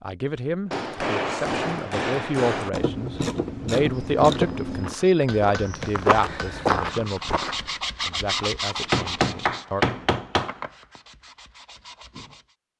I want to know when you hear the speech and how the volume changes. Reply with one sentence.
You can hear the speech from 0.0 to 9.8 s, getting louder then quieter.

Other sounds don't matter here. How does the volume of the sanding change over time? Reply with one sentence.
The loudness of the sanding goes down.